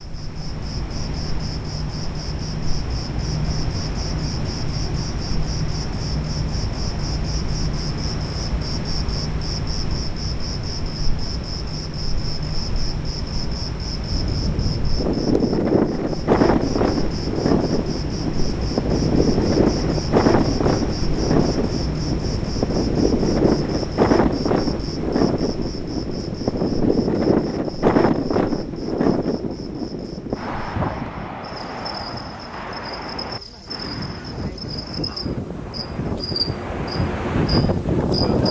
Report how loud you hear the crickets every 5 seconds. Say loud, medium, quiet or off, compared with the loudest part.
loud, loud, loud, loud, loud, medium, medium, loud.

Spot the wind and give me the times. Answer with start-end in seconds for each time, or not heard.
13.9-38.4.